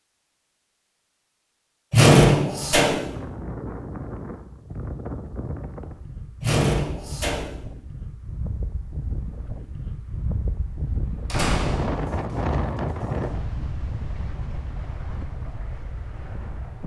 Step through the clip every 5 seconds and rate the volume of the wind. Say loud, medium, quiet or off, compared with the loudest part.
medium, medium, loud, medium.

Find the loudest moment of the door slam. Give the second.
2 s.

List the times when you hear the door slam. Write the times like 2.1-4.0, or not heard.
1.9-3.1, 6.4-7.7, 11.3-11.9.